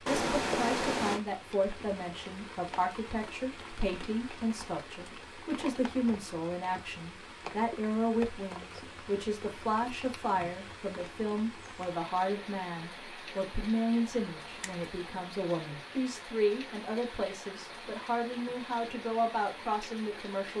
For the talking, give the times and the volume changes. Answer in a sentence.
The talking can be heard from 0.1 to 20.5 s, at a steady volume.